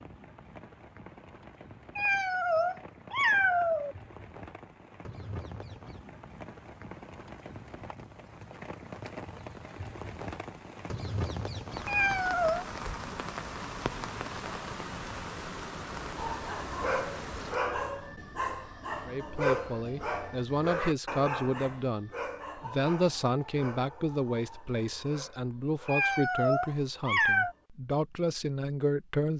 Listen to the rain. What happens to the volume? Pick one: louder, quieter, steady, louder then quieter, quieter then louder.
louder.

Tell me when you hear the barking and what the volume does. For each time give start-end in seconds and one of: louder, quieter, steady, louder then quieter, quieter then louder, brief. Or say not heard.
16.1-27.7 quieter.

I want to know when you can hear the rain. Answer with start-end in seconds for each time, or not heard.
0.0-17.6.